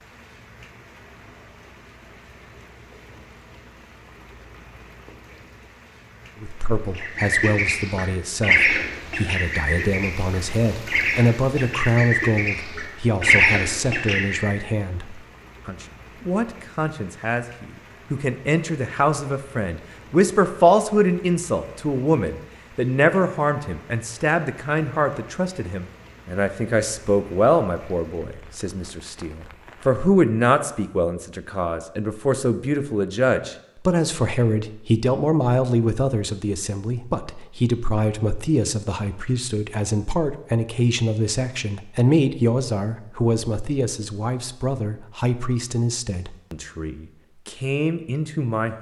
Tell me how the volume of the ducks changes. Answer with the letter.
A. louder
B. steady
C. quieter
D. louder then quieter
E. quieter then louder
E.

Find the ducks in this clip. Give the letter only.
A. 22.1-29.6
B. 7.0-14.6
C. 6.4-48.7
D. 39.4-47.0
B.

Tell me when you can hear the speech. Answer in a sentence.
You can hear the speech from 6.4 to 48.7 s.